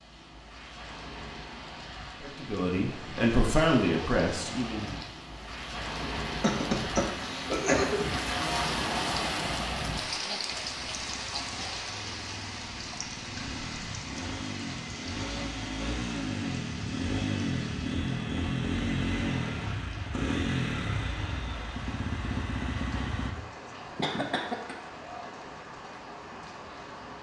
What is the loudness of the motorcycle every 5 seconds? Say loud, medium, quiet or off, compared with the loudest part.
off, off, medium, loud, loud, off.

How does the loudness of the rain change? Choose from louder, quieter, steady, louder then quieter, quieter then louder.
louder then quieter.